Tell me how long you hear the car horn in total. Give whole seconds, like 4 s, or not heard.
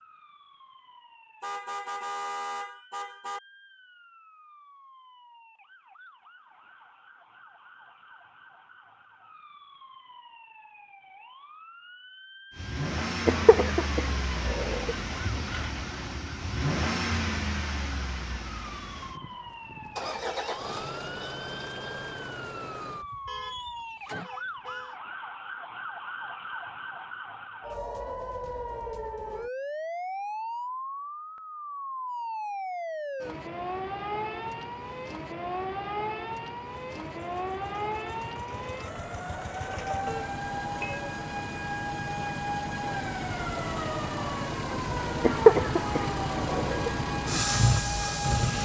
5 s.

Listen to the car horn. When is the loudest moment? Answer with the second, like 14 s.
2 s.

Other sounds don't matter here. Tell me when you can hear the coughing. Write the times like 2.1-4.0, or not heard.
13.2-14.9, 45.2-46.9.